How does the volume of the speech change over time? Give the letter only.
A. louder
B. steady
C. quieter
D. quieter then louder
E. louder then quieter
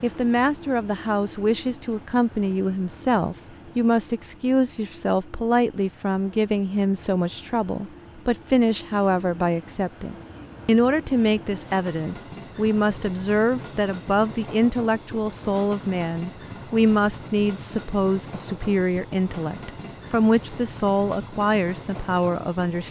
B.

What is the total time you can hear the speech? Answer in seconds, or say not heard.
23 s.